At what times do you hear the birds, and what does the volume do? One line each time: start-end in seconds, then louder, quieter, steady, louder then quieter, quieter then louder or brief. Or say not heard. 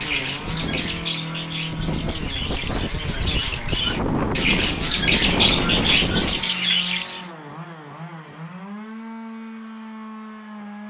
0.0-7.2 louder.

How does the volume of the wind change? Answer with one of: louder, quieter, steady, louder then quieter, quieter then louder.
louder.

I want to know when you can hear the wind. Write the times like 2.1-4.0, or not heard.
0.2-6.5.